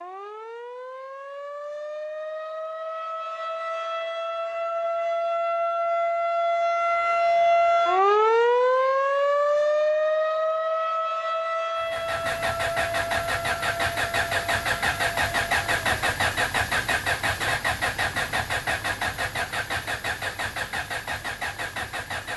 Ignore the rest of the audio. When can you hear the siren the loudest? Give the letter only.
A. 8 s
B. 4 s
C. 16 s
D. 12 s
A.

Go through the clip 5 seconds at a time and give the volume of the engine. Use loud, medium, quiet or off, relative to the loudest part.
off, off, loud, loud, medium.